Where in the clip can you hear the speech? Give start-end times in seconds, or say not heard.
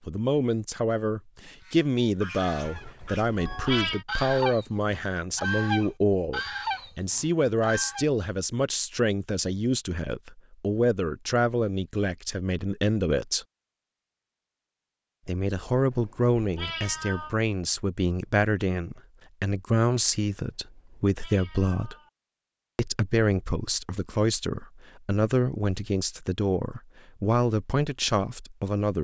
0.1-13.4, 15.2-21.9, 22.8-28.9.